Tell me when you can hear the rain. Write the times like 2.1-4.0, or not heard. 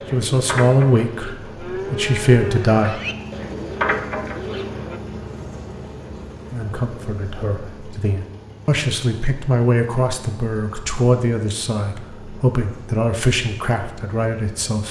not heard.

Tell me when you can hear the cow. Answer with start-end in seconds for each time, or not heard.
0.0-5.0.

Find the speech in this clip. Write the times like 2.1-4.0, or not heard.
0.1-3.0, 6.5-14.8.